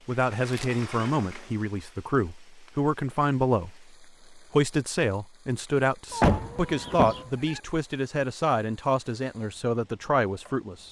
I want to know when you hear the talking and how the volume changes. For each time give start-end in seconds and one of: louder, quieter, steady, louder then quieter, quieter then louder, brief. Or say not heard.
0.1-10.8 steady.